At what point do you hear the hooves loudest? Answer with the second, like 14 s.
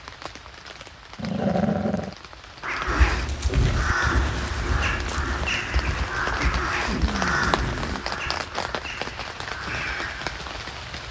4 s.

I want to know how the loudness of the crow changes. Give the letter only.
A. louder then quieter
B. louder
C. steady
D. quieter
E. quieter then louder
D.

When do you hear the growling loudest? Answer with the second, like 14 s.
2 s.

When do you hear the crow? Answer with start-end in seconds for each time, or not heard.
2.6-10.2.